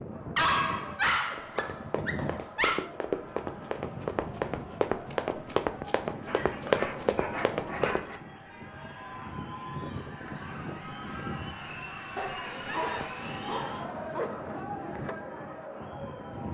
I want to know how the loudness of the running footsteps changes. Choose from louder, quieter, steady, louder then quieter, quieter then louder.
louder.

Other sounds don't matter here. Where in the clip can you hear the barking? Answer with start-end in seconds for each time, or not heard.
0.3-2.9, 6.2-8.2, 12.2-14.3.